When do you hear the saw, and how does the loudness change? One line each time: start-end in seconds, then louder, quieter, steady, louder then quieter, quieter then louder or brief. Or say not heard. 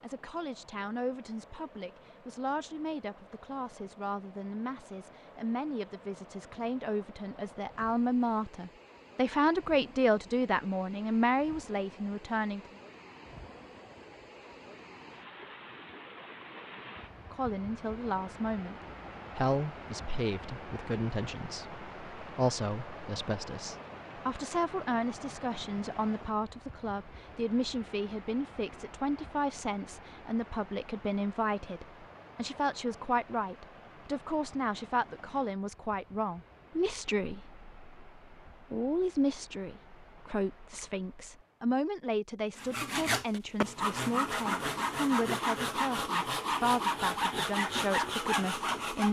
42.5-49.0 steady.